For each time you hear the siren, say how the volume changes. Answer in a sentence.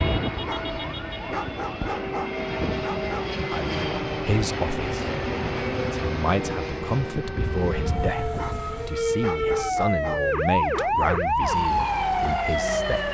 The siren can be heard from 0.0 to 13.0 s, getting louder.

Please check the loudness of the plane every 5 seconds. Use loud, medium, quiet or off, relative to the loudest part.
loud, loud, quiet.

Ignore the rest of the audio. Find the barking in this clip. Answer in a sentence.
You can hear the barking from 0.5 to 3.4 s and from 8.3 to 11.2 s.